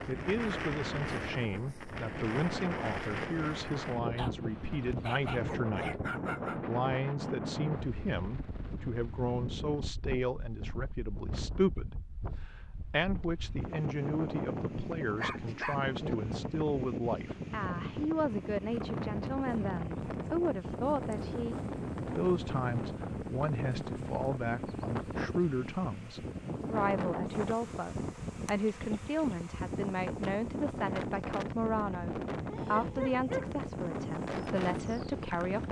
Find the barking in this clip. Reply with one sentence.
The barking can be heard from 4.2 to 6.6 s, from 15.2 to 16.1 s and from 32.5 to 33.6 s.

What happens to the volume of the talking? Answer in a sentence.
The loudness of the talking stays about the same.